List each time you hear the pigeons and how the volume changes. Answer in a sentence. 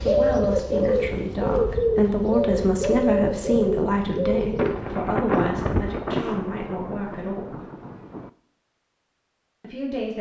You can hear the pigeons from 0.0 to 6.4 s, getting quieter.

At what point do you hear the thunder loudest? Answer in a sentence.
The loudest moment of the thunder is at 5 seconds.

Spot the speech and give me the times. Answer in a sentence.
You can hear the speech from 0.0 to 7.5 s and from 9.6 to 10.1 s.